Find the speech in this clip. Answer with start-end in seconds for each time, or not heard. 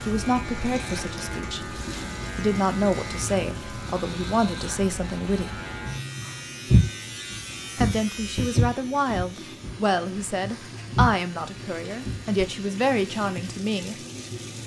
0.1-1.6, 2.4-5.5, 7.8-13.9.